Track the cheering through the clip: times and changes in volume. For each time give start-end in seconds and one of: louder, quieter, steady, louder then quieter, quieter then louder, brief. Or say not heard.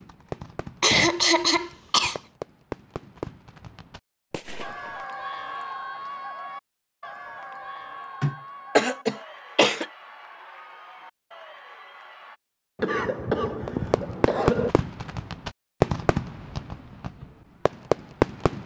4.6-12.4 quieter.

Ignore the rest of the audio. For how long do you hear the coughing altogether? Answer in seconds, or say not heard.
5 s.